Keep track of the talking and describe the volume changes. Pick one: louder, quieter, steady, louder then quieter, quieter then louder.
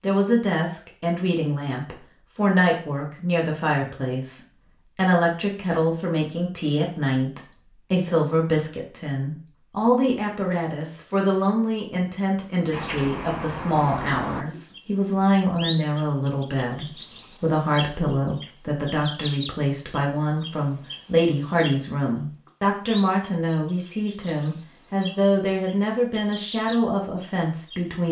steady.